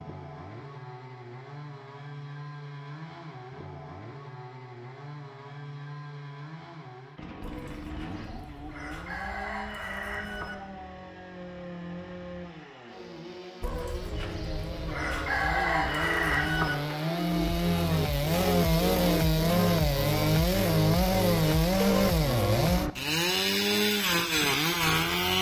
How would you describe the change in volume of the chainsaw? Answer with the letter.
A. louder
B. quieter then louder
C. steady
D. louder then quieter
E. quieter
A.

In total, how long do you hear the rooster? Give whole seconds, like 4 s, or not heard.
6 s.